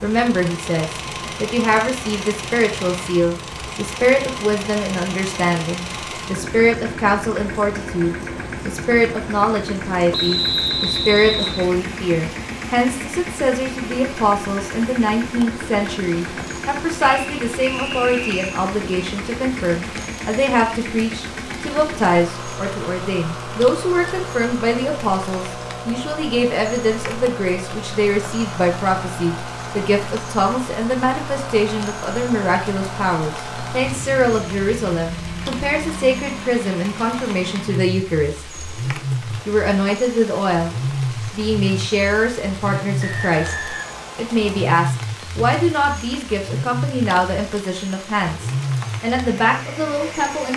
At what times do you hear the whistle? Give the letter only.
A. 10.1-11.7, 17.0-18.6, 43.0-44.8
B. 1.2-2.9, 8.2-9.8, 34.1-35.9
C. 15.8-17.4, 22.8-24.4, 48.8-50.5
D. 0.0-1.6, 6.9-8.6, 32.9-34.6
A.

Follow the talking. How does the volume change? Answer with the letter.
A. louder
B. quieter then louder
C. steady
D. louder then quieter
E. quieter
C.